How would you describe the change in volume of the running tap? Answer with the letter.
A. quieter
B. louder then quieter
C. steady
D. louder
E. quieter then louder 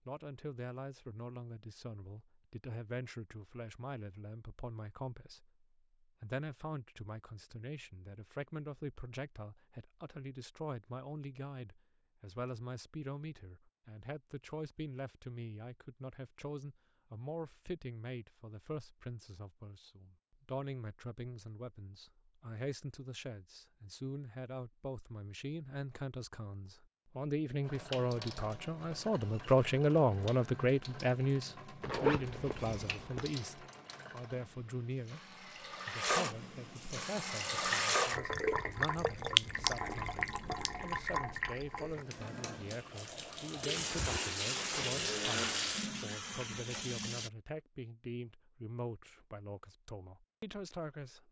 D.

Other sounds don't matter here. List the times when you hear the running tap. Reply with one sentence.
You can hear the running tap from 27.6 to 47.3 s.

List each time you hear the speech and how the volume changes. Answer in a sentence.
You can hear the speech from 0.1 to 51.2 s, getting louder then quieter.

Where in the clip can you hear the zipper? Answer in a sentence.
The zipper can be heard from 31.8 to 33.3 s.